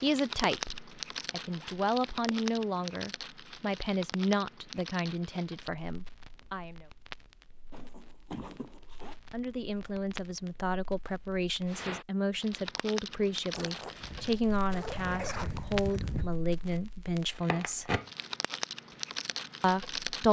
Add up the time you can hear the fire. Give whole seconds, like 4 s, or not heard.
20 s.